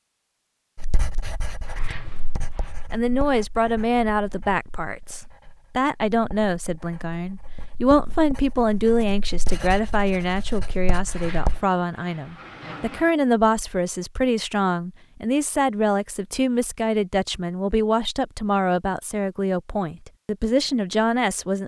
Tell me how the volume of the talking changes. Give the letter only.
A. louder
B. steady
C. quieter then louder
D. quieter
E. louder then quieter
B.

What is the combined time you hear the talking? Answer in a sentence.
You can hear the talking for 19 seconds altogether.